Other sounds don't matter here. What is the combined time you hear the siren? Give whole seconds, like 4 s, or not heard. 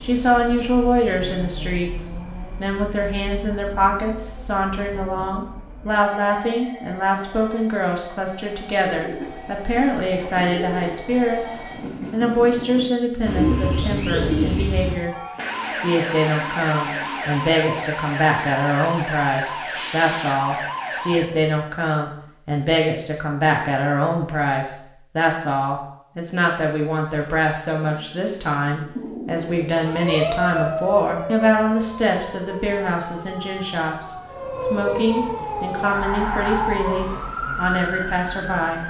16 s.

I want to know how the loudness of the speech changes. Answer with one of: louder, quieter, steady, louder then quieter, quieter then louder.
steady.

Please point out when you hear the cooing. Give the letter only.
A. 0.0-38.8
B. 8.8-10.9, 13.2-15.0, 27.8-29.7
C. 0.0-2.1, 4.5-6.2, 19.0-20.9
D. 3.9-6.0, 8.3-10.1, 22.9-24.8
B.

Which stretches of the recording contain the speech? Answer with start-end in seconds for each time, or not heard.
0.0-38.8.